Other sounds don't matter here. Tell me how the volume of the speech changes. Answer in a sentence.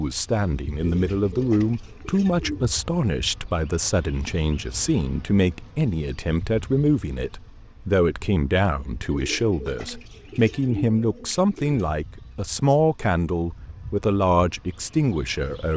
The volume of the speech stays about the same.